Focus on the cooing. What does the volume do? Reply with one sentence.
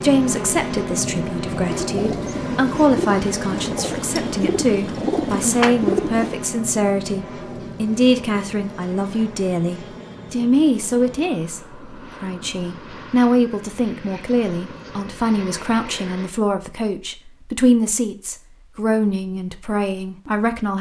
The loudness of the cooing goes up.